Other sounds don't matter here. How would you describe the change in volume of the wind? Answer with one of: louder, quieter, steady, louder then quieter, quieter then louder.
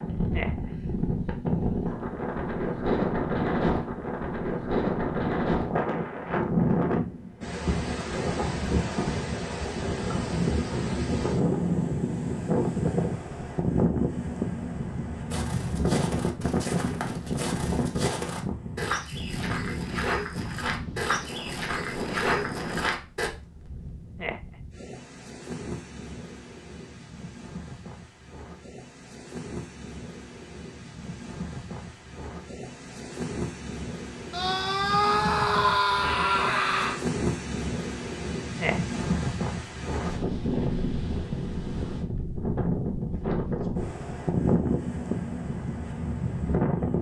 quieter then louder.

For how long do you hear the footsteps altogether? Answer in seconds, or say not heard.
8 s.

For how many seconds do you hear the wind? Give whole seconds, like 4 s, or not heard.
47 s.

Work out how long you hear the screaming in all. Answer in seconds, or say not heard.
3 s.